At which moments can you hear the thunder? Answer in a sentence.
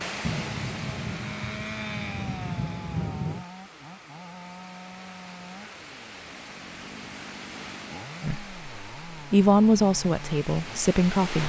The thunder can be heard from 0.2 to 3.5 s.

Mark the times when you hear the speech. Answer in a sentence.
You can hear the speech from 8.2 to 11.4 s.